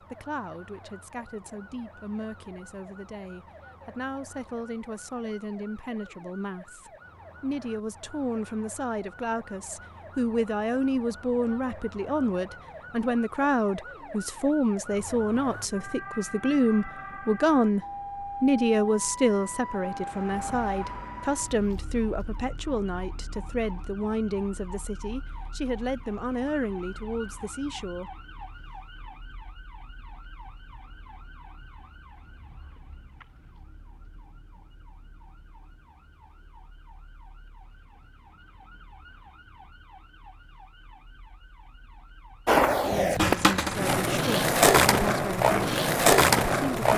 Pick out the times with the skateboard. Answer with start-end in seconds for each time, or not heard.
42.5-46.9.